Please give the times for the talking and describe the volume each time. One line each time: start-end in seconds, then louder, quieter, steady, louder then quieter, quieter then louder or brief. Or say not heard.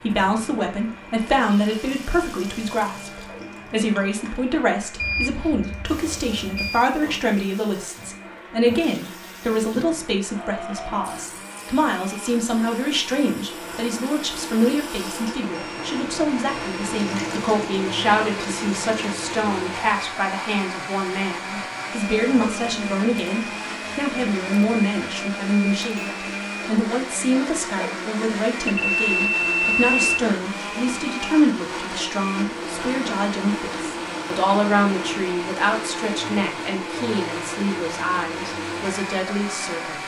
0.0-40.0 steady.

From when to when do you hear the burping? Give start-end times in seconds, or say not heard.
10.3-11.2.